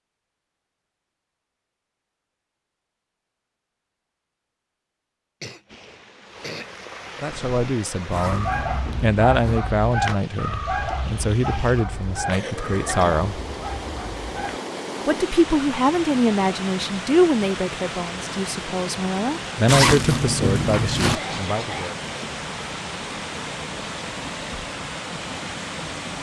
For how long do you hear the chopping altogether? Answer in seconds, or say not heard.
not heard.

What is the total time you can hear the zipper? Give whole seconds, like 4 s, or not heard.
3 s.